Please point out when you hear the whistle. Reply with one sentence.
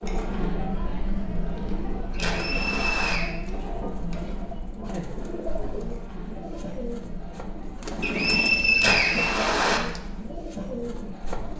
You can hear the whistle from 2.3 to 3.4 s and from 8.0 to 10.0 s.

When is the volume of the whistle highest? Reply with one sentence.
The loudest moment of the whistle is at 9 seconds.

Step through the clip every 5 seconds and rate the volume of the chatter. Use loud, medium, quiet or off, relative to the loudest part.
loud, medium, medium.